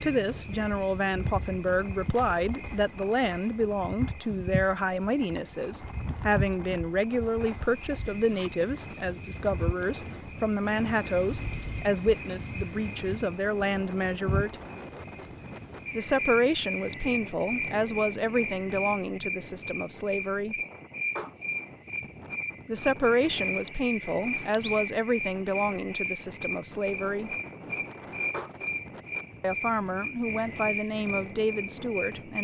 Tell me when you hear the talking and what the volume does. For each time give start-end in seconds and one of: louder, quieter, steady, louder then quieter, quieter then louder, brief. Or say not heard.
0.0-14.6 steady
15.9-20.6 quieter
22.6-27.3 quieter
29.4-32.3 brief.